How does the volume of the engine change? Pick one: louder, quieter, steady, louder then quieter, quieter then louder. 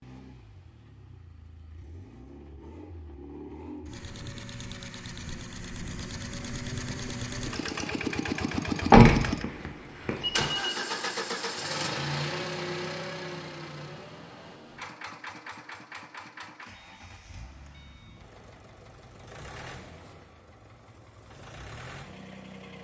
louder then quieter.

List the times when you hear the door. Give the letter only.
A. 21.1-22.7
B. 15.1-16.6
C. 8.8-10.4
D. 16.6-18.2
C.